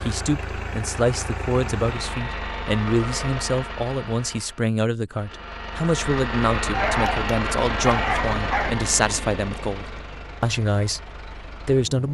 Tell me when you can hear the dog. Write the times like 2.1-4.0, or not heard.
6.7-8.7.